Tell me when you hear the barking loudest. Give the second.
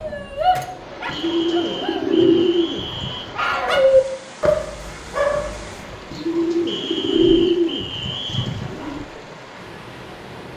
4 s.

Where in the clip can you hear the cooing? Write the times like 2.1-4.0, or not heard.
1.1-3.3, 6.1-9.1.